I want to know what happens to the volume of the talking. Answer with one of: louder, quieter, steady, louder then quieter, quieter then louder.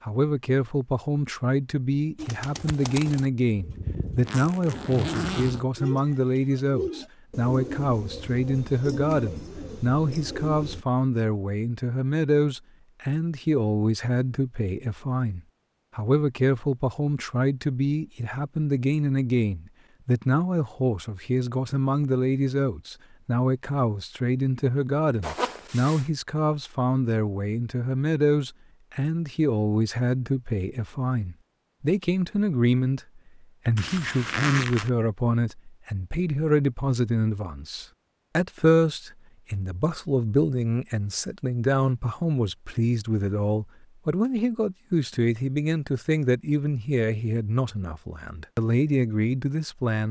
steady.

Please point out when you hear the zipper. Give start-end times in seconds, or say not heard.
4.2-5.6, 25.2-26.1, 33.8-34.9.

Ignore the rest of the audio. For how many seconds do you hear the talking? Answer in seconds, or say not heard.
50 s.